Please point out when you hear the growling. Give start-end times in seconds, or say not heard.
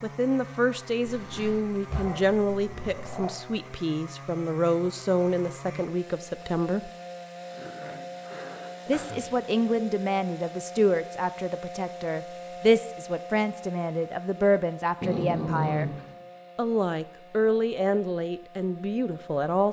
1.1-3.4, 7.5-9.3, 15.0-16.2.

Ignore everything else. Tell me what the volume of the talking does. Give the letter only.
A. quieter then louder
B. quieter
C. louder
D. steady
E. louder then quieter
D.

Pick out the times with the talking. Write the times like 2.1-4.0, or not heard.
0.0-6.9, 8.8-15.9, 16.6-19.6.